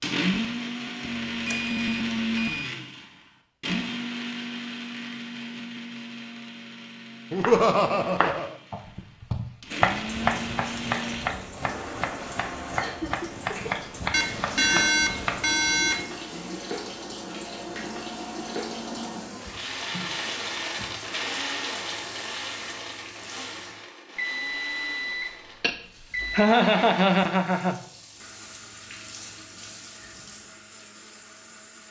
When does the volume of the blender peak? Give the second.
2 s.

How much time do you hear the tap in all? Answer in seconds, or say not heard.
20 s.